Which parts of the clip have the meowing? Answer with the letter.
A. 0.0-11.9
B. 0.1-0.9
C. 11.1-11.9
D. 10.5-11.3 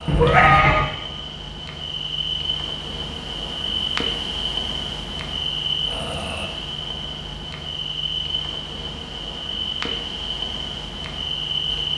B.